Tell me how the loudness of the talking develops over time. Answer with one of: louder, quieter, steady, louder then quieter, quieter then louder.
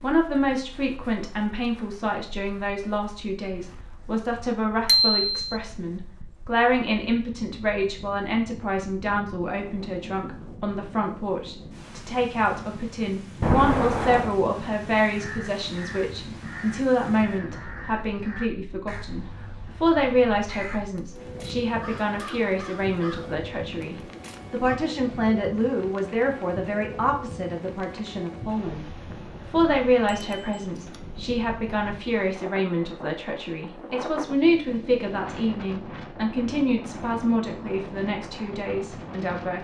steady.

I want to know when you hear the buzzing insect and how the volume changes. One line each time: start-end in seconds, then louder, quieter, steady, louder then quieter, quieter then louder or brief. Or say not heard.
not heard.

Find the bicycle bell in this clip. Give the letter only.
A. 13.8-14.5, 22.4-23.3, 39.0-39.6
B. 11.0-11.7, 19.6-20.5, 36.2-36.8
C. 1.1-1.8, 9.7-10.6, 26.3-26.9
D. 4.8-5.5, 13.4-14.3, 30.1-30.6
D.